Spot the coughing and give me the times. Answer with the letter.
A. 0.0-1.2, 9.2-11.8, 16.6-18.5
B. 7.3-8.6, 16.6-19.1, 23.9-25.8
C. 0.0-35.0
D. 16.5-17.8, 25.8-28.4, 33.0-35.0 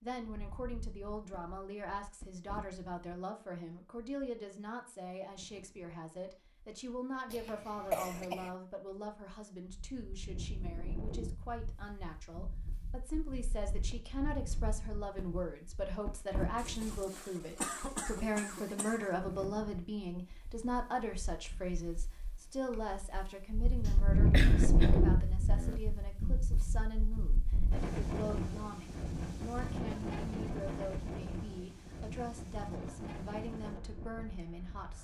B.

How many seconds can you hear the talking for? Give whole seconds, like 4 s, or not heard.
35 s.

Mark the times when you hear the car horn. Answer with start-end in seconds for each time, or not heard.
not heard.